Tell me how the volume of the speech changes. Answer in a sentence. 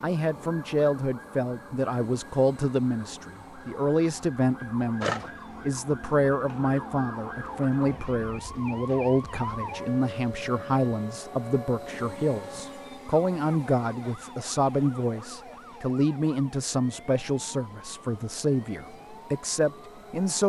The volume of the speech stays about the same.